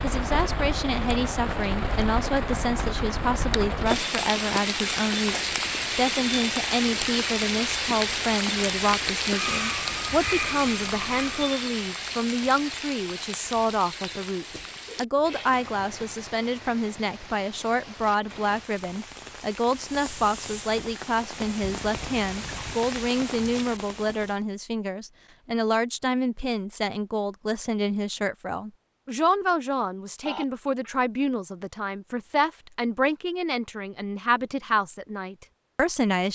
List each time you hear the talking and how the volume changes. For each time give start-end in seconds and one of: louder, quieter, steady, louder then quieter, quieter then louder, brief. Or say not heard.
0.0-36.2 steady.